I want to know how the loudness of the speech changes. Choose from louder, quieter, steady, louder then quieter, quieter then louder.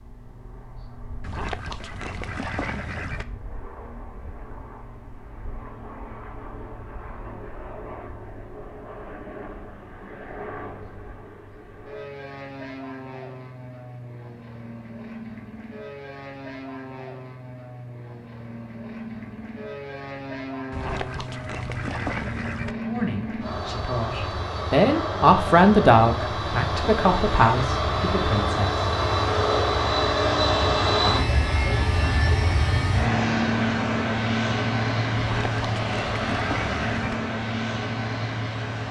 louder then quieter.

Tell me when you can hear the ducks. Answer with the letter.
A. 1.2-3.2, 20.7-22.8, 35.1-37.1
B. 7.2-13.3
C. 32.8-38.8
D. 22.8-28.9
A.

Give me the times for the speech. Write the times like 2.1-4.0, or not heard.
22.8-28.9.